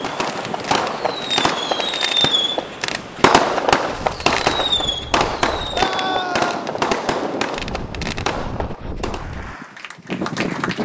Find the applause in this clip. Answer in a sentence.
The applause can be heard from 9.2 to 10.7 s.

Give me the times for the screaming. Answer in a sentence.
You can hear the screaming from 5.7 to 6.7 s.